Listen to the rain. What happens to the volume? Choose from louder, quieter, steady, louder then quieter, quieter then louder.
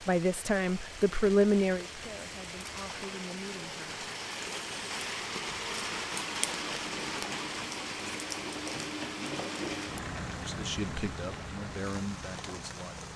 louder then quieter.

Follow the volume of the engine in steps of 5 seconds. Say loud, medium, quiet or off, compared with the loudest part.
medium, loud, loud.